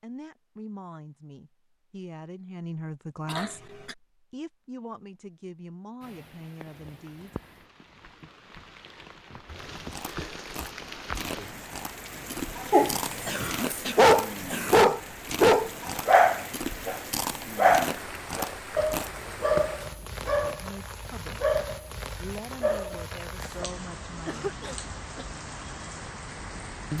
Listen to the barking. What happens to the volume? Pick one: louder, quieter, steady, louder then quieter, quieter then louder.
quieter.